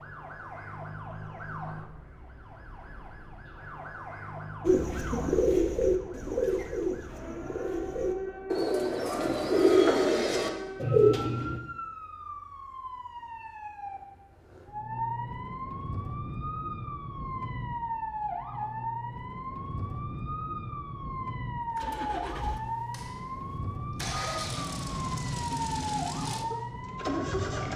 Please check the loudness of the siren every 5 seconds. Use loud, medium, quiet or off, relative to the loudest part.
medium, medium, medium, loud, loud, loud.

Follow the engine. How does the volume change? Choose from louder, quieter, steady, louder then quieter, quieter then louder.
louder.